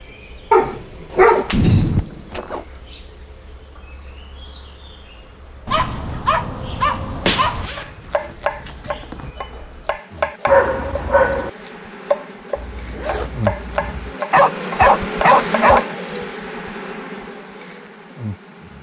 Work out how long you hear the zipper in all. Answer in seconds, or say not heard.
5 s.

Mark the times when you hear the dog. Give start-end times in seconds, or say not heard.
0.5-2.4, 5.7-7.7, 10.4-11.5, 14.3-15.9.